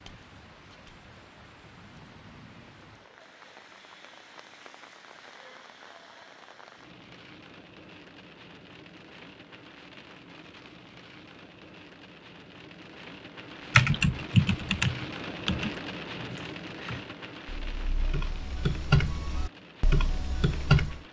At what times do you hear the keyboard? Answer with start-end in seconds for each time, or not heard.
13.7-21.0.